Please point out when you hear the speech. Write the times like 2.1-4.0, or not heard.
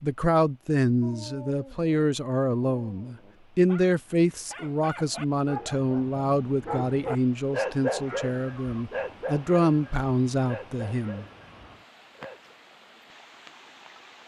0.0-11.2.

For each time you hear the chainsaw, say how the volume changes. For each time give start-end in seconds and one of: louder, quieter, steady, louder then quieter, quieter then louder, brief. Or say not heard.
not heard.